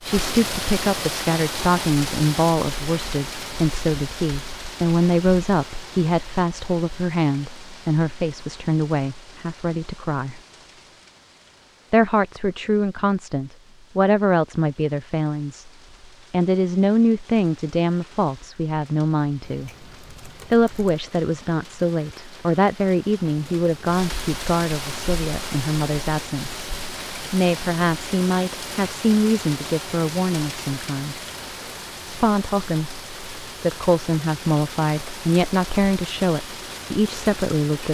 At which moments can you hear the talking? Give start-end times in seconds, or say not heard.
0.0-10.4, 11.9-15.7, 16.3-19.7, 20.5-26.6, 27.3-31.2, 32.0-37.8.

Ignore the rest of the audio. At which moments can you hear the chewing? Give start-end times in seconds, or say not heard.
not heard.